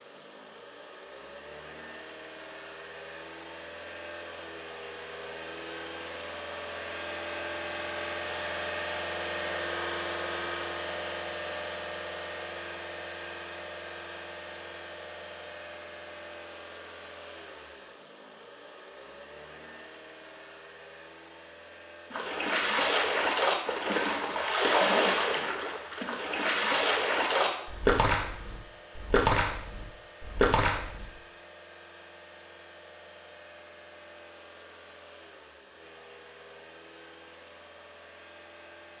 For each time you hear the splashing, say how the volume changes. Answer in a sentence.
The splashing can be heard from 22.1 to 31.1 s, at a steady volume.